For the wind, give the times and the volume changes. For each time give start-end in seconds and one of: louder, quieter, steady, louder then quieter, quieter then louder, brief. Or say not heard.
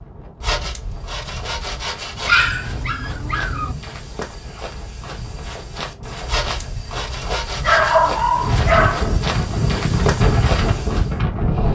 0.0-11.7 louder.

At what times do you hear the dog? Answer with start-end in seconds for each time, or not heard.
2.2-3.8, 7.6-9.2.